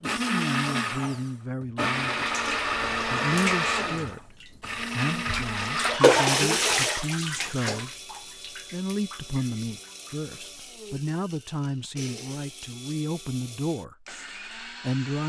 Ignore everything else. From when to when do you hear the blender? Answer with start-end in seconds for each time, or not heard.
0.0-15.2.